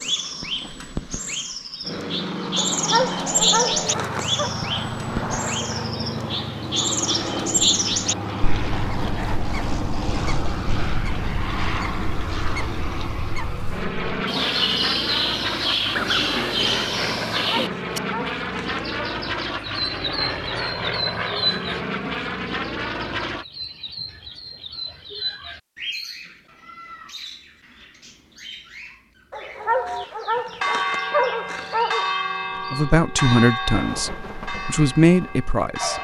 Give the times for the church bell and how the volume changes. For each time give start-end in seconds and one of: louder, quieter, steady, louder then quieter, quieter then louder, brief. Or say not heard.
29.6-35.9 quieter.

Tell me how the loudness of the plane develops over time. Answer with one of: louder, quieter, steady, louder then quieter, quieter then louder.
steady.